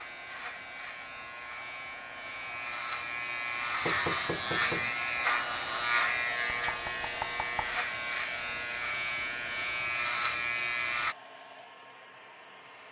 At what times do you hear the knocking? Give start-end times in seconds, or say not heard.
3.8-4.9, 6.5-7.8.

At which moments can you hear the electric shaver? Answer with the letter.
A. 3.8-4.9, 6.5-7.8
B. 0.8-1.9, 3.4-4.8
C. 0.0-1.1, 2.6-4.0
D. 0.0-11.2
D.